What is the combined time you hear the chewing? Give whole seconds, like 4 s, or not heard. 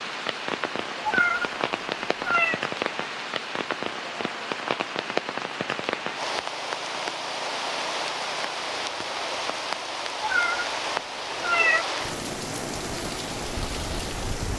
not heard.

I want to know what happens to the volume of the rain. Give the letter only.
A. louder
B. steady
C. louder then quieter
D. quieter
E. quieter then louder
B.